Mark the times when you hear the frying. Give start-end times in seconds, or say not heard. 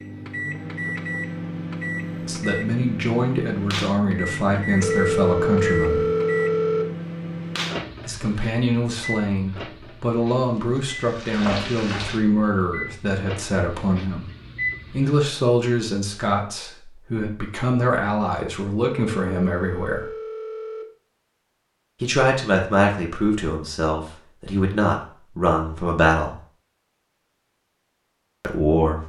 10.3-12.2.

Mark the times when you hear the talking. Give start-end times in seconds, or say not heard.
2.2-6.0, 8.1-14.3, 14.9-20.1, 22.0-26.4, 28.4-29.0.